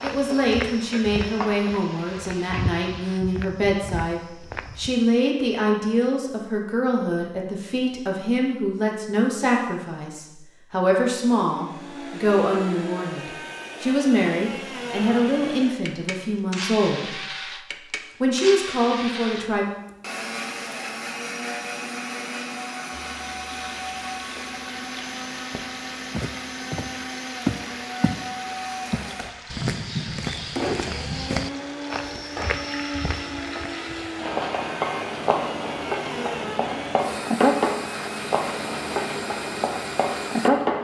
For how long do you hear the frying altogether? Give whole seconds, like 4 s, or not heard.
21 s.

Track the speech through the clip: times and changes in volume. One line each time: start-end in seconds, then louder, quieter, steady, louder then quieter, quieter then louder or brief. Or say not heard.
0.0-19.6 steady.